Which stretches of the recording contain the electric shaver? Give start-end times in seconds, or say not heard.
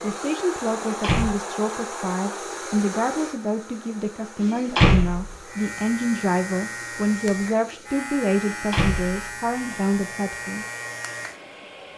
5.5-11.9.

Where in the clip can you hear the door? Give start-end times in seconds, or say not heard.
0.9-1.4, 4.7-5.3, 8.7-9.9.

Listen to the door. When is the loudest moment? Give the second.
5 s.